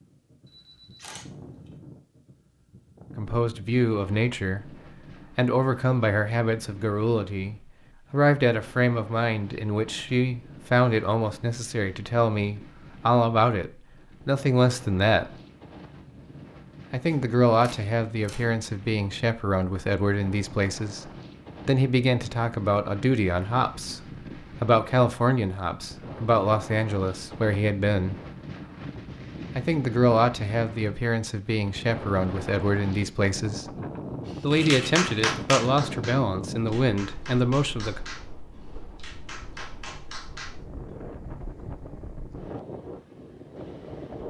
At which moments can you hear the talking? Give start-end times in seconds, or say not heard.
3.1-15.3, 16.9-28.2, 29.6-33.8, 34.4-38.0.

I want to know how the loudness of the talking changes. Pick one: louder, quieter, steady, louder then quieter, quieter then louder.
steady.